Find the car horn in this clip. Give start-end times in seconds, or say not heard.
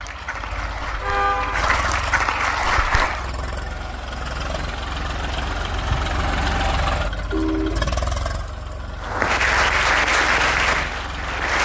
1.0-1.8, 7.0-8.0.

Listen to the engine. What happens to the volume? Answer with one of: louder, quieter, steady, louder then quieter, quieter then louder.
louder then quieter.